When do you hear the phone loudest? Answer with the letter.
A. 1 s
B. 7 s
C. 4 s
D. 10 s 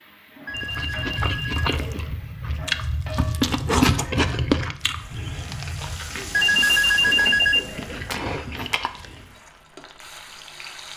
B.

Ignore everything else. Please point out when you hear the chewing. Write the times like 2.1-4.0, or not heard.
0.5-9.3.